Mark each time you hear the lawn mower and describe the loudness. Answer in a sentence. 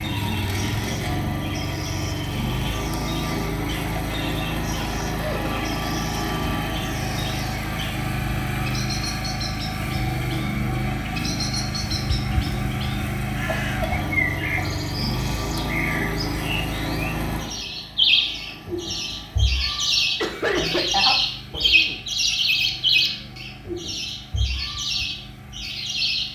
The lawn mower can be heard from 0.0 to 26.3 s, getting quieter.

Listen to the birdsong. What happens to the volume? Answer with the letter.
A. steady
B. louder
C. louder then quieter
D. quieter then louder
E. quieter
B.